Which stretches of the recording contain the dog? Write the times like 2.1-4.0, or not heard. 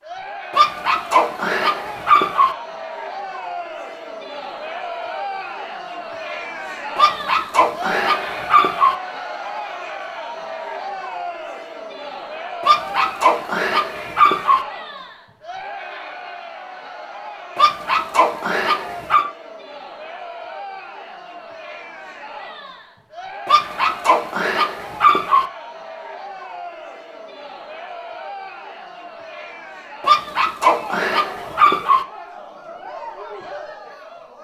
0.5-2.5, 7.0-8.9, 12.6-14.6, 17.6-19.2, 23.4-25.4, 30.0-32.0.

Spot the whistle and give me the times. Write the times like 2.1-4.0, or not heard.
not heard.